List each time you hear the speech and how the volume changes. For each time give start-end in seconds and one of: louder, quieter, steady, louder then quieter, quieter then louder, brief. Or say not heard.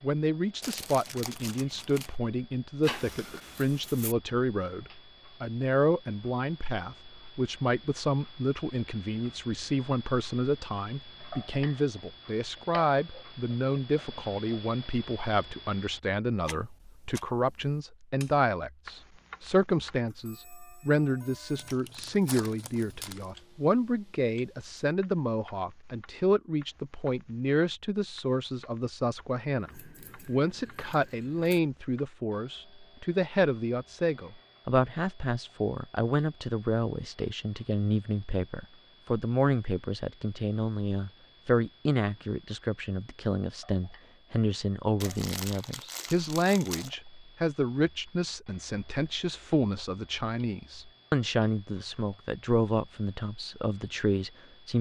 0.0-54.7 steady.